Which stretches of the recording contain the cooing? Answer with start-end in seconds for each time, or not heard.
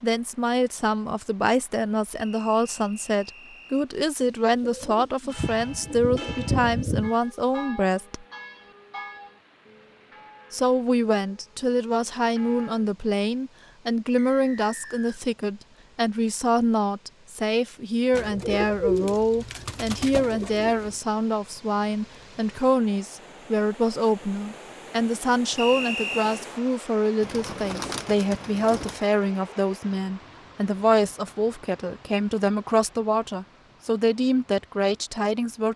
4.6-7.1, 18.1-20.9, 27.2-29.0.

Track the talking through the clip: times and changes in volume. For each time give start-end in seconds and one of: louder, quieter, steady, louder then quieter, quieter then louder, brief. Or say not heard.
0.0-8.2 steady
10.5-35.7 steady.